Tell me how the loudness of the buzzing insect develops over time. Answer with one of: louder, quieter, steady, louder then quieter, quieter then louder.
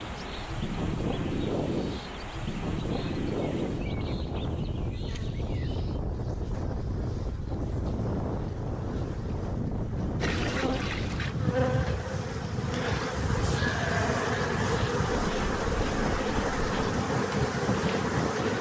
louder.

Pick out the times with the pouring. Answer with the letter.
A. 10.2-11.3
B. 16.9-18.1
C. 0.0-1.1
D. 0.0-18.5
A.